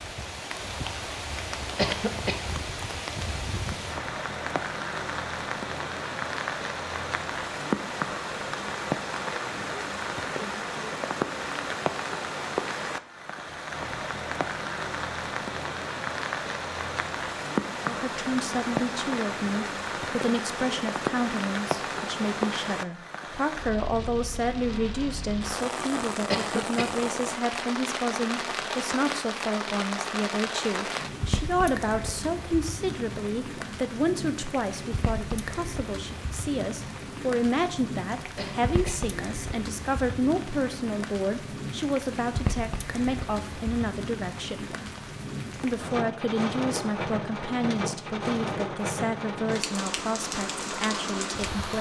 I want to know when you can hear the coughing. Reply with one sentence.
The coughing can be heard from 1.8 to 2.5 s, from 26.3 to 26.9 s and from 38.4 to 39.0 s.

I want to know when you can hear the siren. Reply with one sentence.
You can't hear the siren here.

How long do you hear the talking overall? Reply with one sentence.
The talking can be heard for 33 seconds in total.